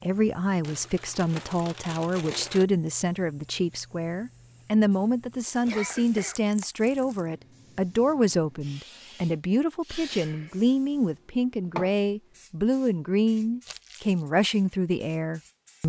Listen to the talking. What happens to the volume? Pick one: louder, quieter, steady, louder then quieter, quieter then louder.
steady.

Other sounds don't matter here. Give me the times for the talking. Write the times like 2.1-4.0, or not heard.
0.0-15.8.